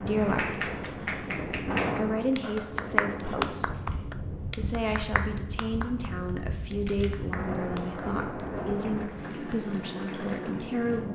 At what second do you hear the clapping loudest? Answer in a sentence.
The loudest moment of the clapping is at 3 seconds.